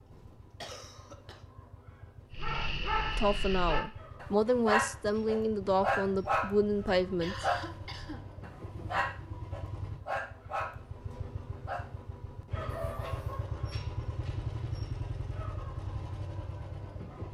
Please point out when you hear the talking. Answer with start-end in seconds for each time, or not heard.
3.1-7.5.